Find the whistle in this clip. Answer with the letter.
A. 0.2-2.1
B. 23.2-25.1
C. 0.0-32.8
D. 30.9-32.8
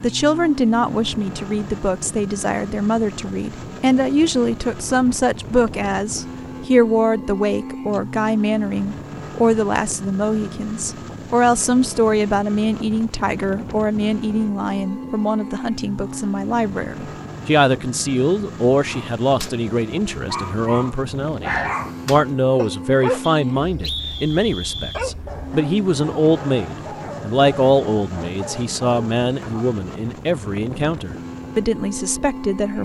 B.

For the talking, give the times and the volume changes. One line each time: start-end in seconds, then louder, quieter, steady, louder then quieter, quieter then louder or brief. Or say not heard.
0.0-32.8 steady.